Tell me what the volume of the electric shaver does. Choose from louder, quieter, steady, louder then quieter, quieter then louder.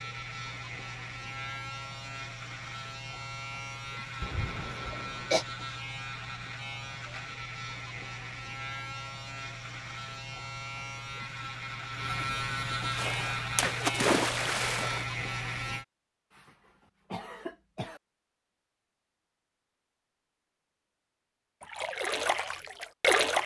louder.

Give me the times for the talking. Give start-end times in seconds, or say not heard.
not heard.